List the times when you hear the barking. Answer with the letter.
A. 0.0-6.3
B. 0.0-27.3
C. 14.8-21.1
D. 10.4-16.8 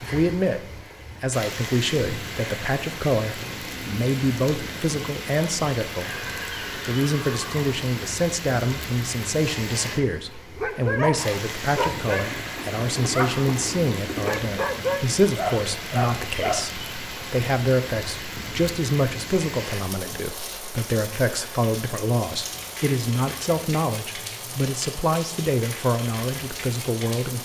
D.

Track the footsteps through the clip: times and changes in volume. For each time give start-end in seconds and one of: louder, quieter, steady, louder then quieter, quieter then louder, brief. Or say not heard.
not heard.